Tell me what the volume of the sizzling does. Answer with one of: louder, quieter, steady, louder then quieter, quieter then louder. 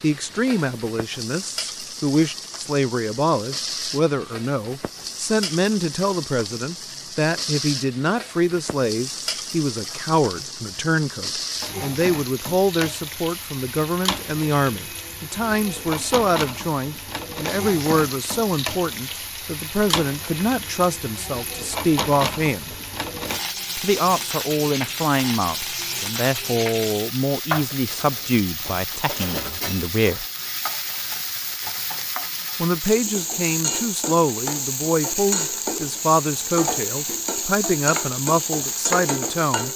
louder.